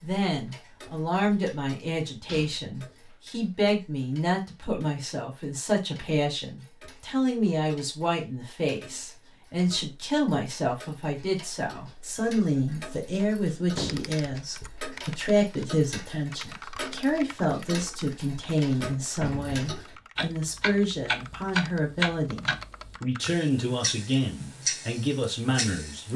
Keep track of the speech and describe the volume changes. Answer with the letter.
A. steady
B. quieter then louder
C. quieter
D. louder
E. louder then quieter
A.